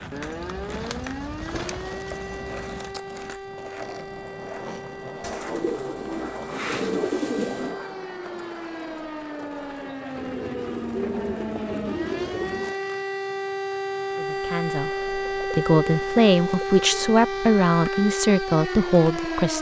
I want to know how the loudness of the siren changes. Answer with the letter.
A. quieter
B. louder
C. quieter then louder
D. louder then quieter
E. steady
B.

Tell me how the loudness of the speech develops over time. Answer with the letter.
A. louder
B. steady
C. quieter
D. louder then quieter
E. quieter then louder
A.